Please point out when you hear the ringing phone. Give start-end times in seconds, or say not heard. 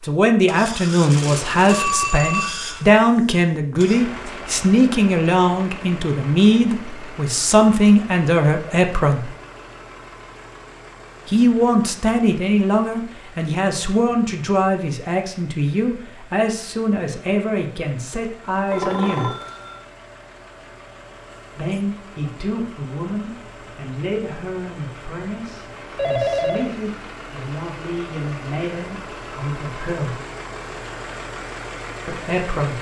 1.6-3.0, 18.7-19.8, 25.9-26.8.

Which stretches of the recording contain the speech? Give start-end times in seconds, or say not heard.
0.0-9.3, 11.2-19.3, 21.6-30.2, 32.0-32.7.